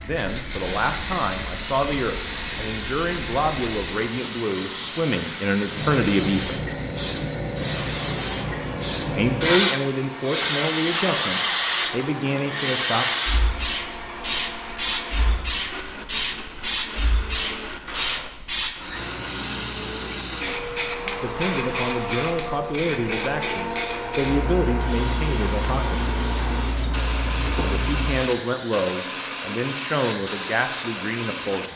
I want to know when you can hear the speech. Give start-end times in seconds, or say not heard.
0.0-6.6, 9.1-13.1, 21.2-26.1, 27.6-31.7.